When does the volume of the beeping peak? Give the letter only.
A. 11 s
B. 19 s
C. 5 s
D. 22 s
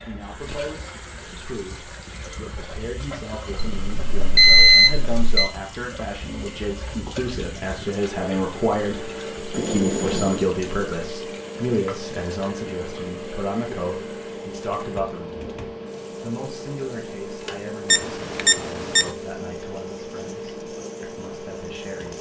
C.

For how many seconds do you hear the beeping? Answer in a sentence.
You can hear the beeping for 4 seconds altogether.